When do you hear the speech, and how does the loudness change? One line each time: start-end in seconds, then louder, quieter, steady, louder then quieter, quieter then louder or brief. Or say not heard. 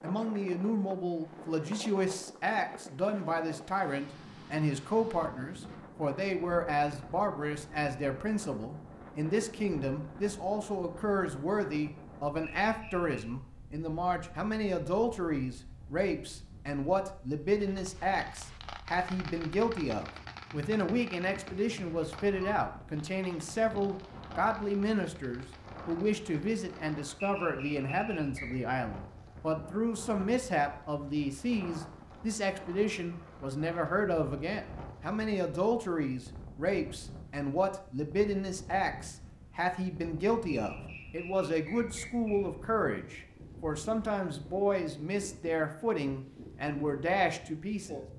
0.0-48.0 steady.